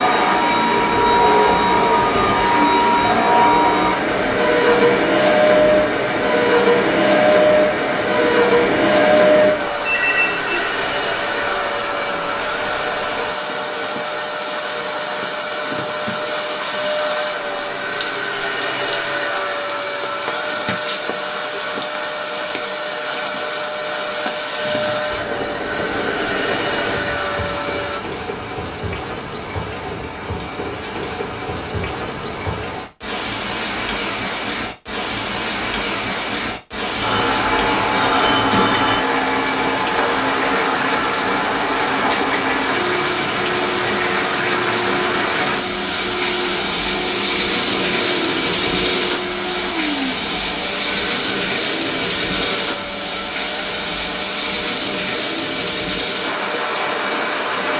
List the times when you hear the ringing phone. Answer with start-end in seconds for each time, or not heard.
9.8-10.7, 37.0-39.0.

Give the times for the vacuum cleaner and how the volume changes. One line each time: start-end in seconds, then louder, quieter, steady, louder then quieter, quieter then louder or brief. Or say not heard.
0.0-28.0 quieter
37.0-57.7 quieter.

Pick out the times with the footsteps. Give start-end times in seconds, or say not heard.
not heard.